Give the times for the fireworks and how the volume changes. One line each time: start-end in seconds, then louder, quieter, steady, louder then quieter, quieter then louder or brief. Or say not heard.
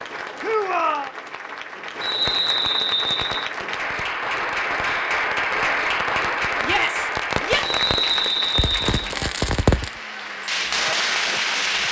2.1-11.8 louder.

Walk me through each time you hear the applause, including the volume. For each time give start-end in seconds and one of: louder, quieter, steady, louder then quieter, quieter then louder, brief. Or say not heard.
0.0-11.8 louder then quieter.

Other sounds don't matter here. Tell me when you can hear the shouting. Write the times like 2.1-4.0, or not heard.
0.4-1.1, 6.6-7.7.